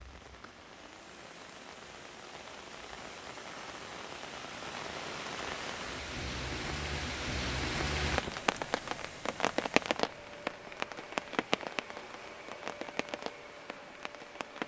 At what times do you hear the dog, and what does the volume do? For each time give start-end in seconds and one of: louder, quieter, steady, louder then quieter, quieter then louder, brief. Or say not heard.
not heard.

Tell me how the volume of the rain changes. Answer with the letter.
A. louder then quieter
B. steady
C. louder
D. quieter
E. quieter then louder
A.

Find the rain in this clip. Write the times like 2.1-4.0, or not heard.
0.0-14.6.